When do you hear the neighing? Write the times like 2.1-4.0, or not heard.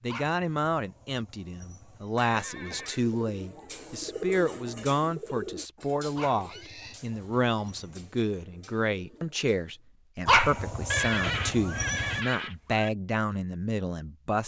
2.1-3.0, 6.3-7.0, 10.9-12.9.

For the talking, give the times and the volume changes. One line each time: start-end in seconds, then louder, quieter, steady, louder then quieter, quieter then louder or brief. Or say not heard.
0.0-14.4 steady.